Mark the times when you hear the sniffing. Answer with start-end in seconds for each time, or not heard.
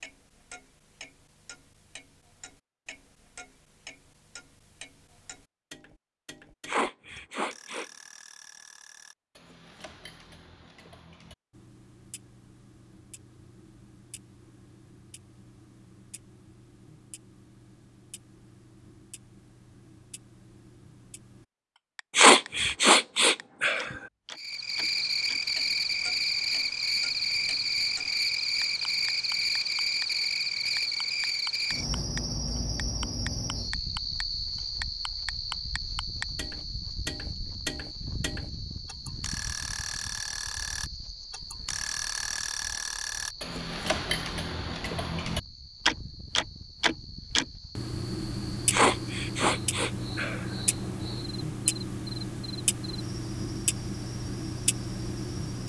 6.7-7.8, 22.1-23.9, 48.7-50.5.